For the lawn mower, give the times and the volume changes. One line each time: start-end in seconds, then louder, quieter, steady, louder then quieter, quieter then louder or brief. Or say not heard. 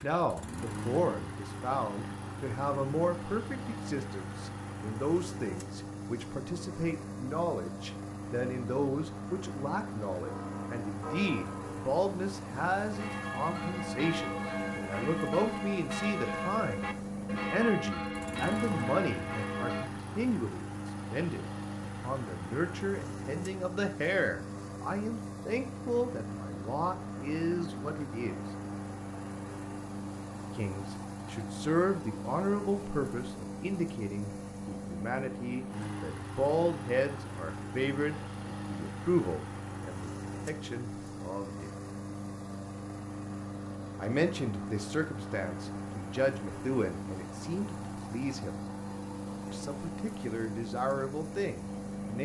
0.0-52.1 steady.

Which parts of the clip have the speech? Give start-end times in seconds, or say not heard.
0.0-28.4, 30.6-41.7, 44.0-48.6, 49.5-52.1.